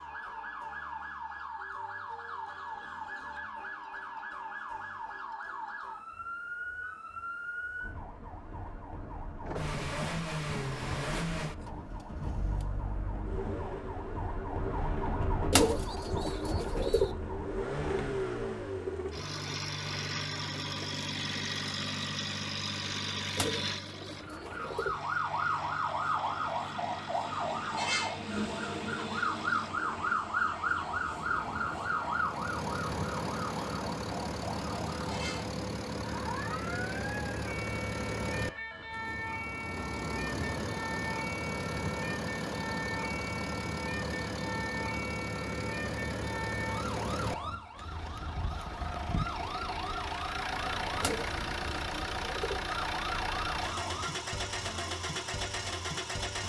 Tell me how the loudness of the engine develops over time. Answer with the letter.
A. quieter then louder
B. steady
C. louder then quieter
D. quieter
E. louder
B.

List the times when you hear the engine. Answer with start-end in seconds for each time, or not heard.
9.4-56.4.